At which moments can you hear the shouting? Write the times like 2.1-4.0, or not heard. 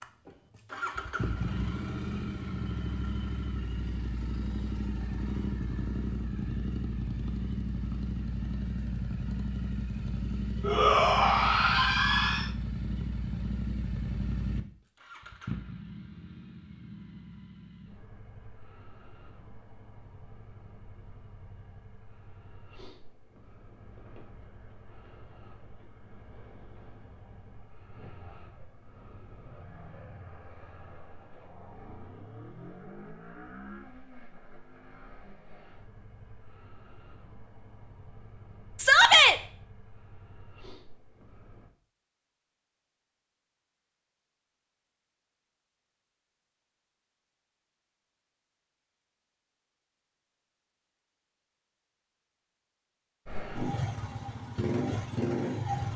10.6-12.5, 38.8-39.4.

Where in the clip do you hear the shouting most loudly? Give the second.
39 s.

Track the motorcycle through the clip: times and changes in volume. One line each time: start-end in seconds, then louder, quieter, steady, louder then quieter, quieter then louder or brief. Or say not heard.
0.0-41.7 quieter
53.2-55.9 brief.